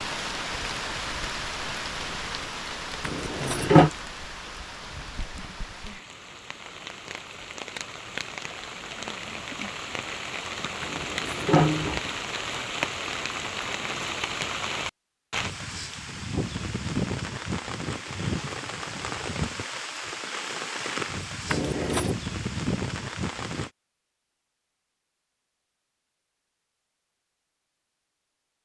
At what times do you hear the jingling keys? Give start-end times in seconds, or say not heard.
3.0-3.9, 10.8-12.0, 21.5-22.1.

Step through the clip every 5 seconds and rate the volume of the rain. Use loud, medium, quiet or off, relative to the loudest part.
loud, medium, loud, loud, loud, off.